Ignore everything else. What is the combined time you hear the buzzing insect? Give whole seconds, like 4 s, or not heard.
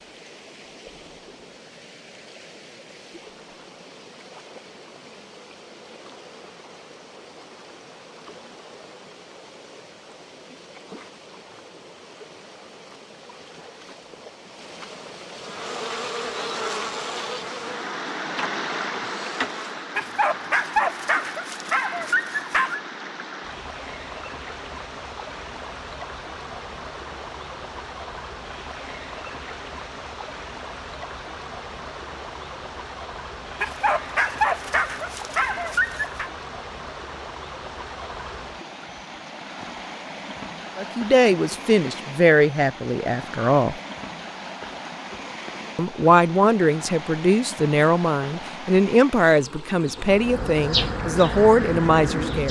7 s.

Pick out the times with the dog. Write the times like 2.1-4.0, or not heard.
19.9-22.8, 33.6-36.3.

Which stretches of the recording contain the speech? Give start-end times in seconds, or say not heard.
40.8-43.8, 45.8-52.4.